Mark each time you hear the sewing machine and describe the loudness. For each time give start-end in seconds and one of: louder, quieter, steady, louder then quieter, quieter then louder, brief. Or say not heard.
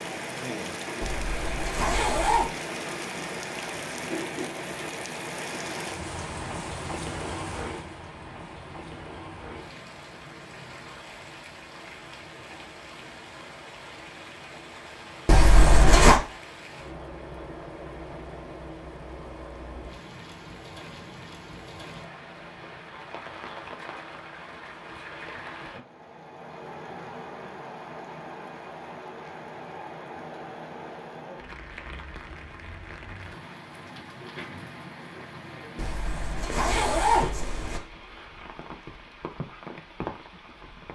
not heard.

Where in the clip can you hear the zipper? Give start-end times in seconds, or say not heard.
1.0-2.5, 15.2-16.2, 35.8-37.8.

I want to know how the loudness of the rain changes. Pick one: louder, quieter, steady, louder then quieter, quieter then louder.
quieter.